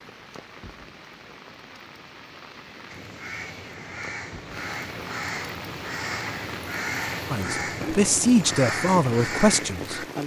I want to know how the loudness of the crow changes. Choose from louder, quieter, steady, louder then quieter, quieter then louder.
louder.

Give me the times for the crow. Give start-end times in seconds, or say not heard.
2.9-10.1.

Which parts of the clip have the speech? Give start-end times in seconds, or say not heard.
7.2-10.0.